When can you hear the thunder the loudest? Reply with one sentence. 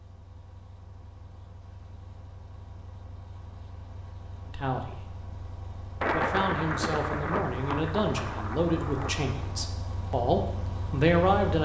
The loudest moment of the thunder is at 6 seconds.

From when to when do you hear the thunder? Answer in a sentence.
The thunder can be heard from 6.0 to 9.7 s.